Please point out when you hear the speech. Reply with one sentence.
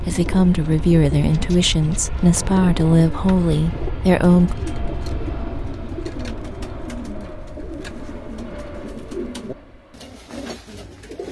You can hear the speech from 0.0 to 4.5 s.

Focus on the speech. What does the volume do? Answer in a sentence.
The loudness of the speech stays about the same.